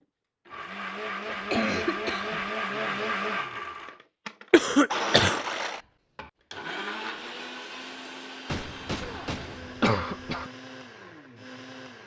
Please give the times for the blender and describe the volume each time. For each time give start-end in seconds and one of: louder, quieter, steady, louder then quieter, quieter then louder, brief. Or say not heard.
0.5-12.0 quieter.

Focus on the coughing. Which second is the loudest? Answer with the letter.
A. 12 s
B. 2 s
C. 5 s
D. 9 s
C.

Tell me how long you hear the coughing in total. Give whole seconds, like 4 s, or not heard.
4 s.